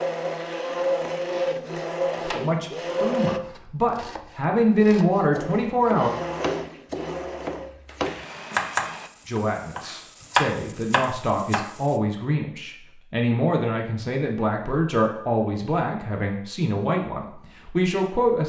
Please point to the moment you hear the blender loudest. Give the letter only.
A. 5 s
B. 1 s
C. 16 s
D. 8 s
B.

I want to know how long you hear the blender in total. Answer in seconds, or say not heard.
7 s.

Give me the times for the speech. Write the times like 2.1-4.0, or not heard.
2.2-6.1, 9.2-18.4.